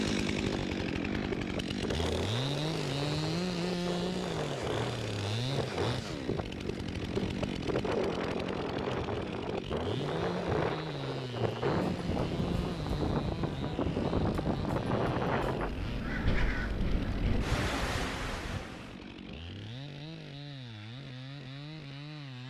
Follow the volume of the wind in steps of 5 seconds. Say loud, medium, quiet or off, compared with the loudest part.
medium, loud, loud, loud, off.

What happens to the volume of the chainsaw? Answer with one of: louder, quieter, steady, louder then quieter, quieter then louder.
quieter.